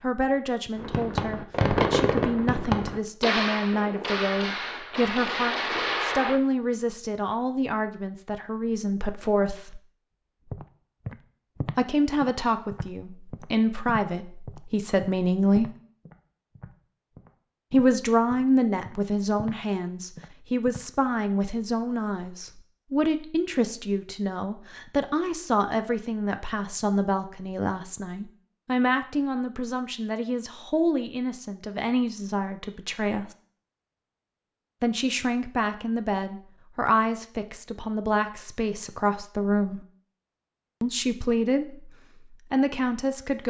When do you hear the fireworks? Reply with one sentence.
The fireworks can be heard from 0.8 to 6.4 s.